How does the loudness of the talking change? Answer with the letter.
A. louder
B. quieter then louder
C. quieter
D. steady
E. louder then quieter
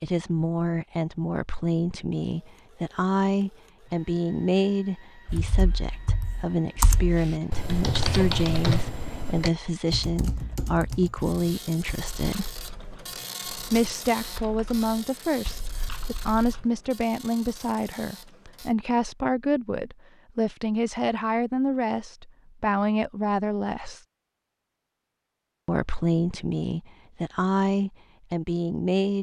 D.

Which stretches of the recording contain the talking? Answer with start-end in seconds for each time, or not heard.
0.0-12.5, 13.7-24.0, 25.6-29.1.